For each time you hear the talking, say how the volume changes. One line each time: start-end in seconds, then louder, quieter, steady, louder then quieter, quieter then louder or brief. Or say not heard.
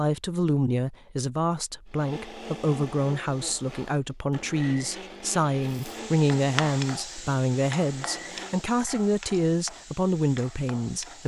0.0-11.2 steady.